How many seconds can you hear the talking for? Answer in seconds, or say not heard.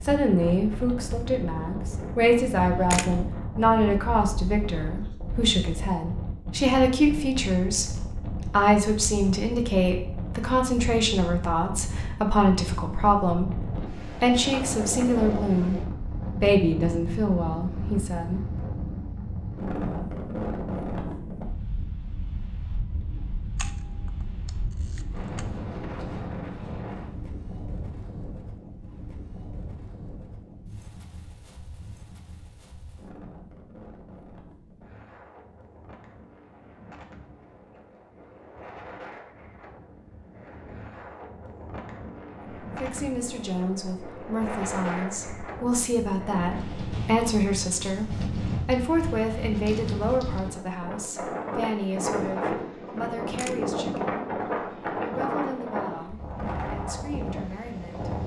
33 s.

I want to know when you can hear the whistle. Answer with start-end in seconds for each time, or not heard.
not heard.